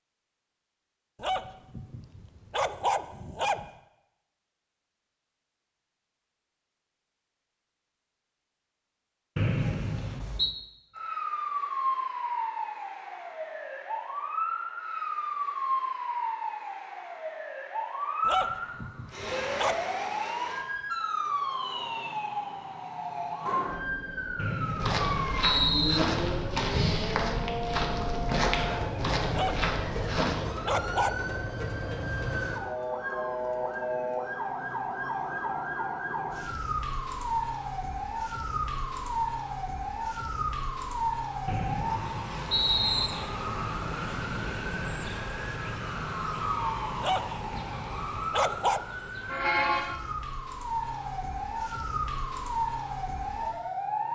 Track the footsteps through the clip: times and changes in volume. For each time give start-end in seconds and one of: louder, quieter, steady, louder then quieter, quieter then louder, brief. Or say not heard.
24.8-30.5 steady.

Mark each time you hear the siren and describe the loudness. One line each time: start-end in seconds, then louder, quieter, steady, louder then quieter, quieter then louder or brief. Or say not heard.
10.9-54.1 steady.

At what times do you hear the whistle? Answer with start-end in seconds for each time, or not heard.
9.3-10.6, 24.4-26.0, 41.5-43.1.